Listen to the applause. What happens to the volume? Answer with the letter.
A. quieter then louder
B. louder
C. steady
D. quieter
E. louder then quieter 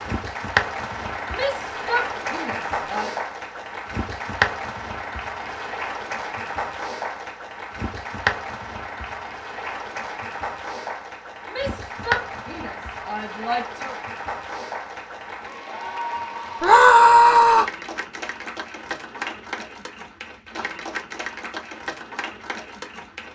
D.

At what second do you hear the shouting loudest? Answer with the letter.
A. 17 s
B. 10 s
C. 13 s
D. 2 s
A.